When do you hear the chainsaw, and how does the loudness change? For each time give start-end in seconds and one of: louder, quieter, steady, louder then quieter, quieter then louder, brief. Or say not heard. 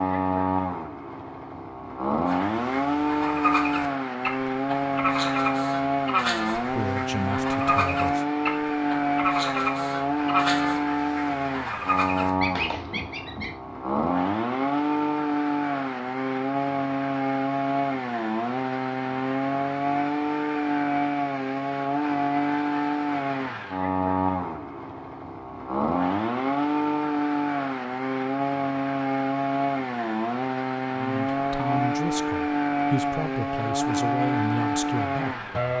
0.0-35.7 steady.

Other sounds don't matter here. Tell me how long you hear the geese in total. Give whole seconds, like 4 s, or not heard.
11 s.